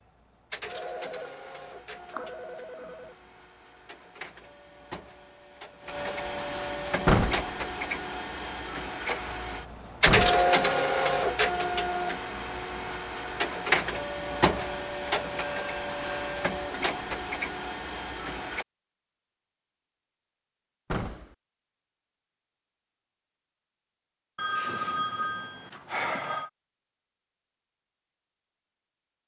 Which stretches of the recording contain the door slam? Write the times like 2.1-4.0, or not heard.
7.0-7.5, 10.1-10.5, 20.9-21.4.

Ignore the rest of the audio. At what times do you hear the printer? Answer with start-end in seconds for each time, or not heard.
0.0-18.6.